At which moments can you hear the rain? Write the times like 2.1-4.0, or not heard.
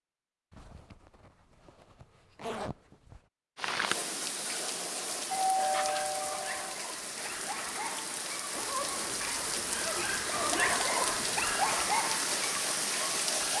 3.5-13.5.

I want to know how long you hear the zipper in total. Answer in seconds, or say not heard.
5 s.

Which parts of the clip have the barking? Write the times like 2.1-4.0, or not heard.
5.7-13.5.